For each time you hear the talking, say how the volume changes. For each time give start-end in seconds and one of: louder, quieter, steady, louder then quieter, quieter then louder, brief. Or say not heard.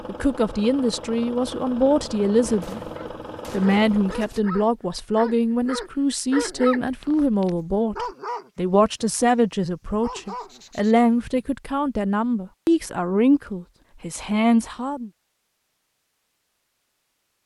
0.1-2.8 brief
3.5-15.1 steady.